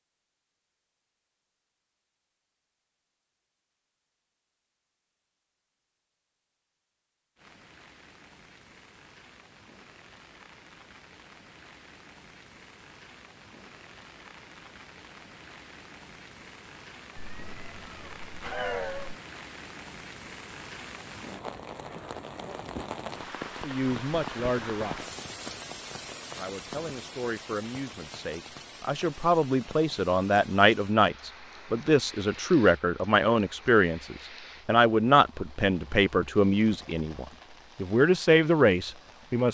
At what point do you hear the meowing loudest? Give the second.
19 s.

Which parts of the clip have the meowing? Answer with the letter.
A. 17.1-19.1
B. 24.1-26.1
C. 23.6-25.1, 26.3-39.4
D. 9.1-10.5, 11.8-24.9
A.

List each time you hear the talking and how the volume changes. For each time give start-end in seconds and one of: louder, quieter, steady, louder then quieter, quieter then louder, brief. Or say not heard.
23.6-25.1 brief
26.3-39.4 louder.